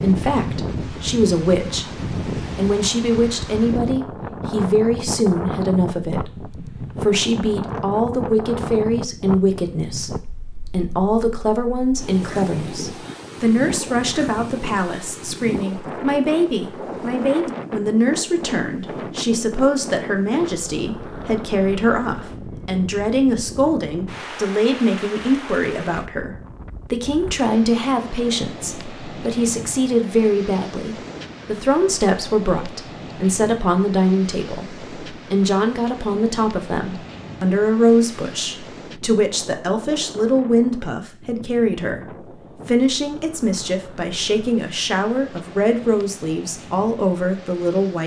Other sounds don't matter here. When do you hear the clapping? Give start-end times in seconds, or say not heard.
not heard.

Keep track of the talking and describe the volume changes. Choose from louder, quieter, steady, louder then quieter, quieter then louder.
steady.